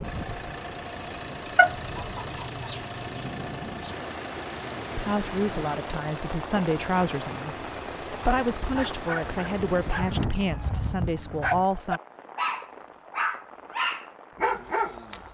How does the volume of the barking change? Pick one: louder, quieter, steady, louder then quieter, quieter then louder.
louder.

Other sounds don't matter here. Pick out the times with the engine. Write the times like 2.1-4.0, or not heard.
0.0-10.3.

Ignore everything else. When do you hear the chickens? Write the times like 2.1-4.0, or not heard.
1.6-3.9.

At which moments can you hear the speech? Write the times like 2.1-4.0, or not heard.
4.9-12.0.